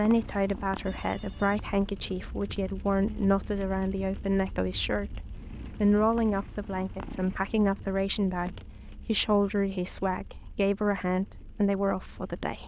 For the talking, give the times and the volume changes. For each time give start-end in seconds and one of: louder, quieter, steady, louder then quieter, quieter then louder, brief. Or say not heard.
0.0-12.6 steady.